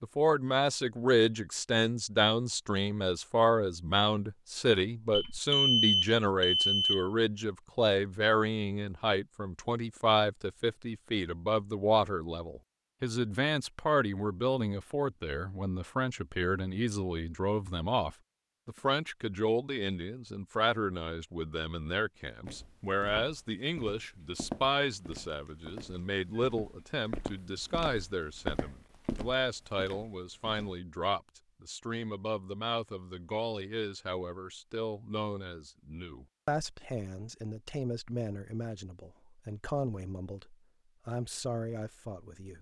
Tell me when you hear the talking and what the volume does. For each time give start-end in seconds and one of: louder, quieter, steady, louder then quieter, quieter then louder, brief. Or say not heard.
0.0-42.5 quieter.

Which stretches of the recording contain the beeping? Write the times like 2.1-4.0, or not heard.
5.1-7.0.